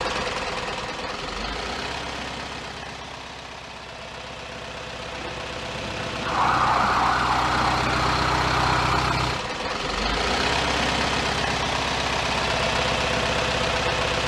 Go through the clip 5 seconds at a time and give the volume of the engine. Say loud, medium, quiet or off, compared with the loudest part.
medium, loud, loud.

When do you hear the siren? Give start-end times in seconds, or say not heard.
6.2-9.0.